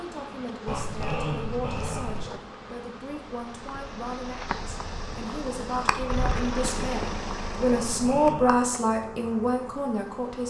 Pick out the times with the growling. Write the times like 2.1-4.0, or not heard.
0.7-2.4, 7.7-8.6.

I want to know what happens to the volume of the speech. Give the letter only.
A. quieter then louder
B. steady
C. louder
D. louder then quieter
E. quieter
C.